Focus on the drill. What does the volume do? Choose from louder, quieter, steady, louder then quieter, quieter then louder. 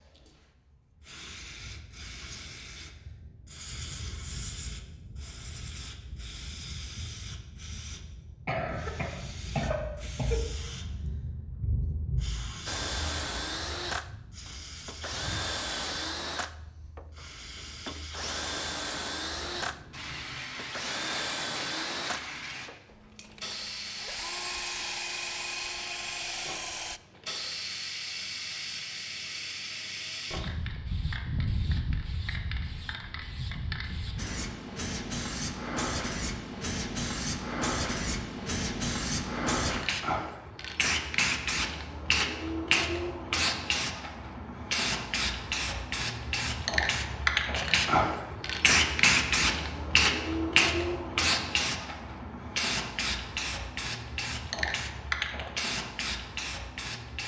steady.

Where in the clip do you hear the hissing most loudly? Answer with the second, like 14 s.
49 s.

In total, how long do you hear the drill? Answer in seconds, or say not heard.
14 s.